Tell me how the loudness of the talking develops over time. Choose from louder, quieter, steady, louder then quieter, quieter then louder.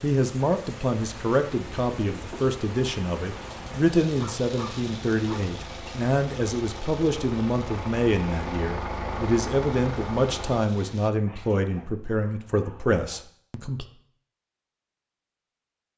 steady.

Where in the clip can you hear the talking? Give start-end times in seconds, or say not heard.
0.0-13.8.